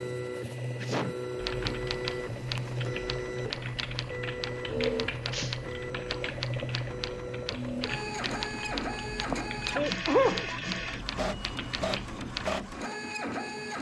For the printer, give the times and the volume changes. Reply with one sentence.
The printer can be heard from 0.0 to 13.7 s, at a steady volume.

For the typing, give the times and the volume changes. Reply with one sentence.
The typing can be heard from 1.4 to 12.5 s, at a steady volume.